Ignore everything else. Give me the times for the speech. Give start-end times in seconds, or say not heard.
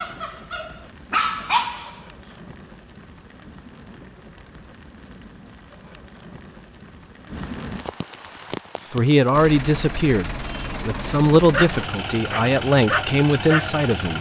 8.9-14.1.